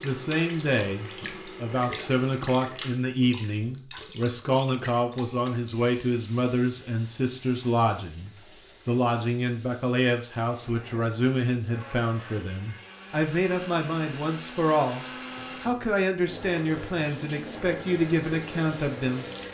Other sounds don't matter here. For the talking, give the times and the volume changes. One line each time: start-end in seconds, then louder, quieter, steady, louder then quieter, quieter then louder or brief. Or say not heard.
0.0-19.4 steady.